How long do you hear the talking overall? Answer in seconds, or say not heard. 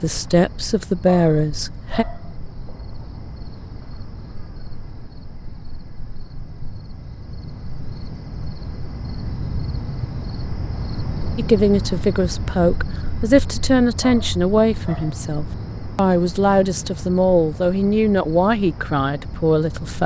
11 s.